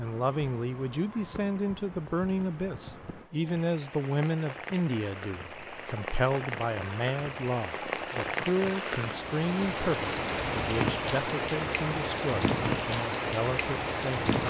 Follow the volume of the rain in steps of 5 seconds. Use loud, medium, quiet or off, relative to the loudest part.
quiet, medium, loud.